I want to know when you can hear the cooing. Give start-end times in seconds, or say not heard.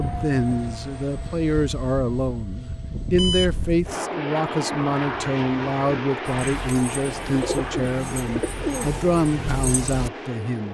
5.0-10.1.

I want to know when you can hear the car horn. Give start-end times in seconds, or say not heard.
not heard.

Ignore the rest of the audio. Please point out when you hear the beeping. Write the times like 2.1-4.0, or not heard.
3.1-3.9.